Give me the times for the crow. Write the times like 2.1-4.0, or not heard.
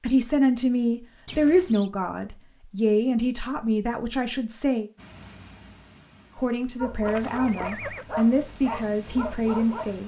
not heard.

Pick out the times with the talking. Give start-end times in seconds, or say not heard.
0.0-4.8, 6.3-10.0.